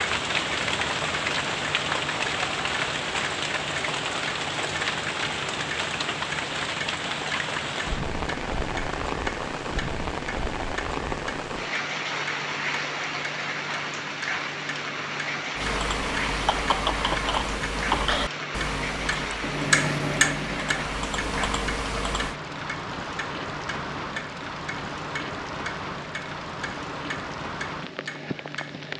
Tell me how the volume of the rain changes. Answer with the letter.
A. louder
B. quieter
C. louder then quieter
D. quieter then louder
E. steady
B.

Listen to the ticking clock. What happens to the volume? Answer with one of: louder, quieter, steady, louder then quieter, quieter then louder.
louder then quieter.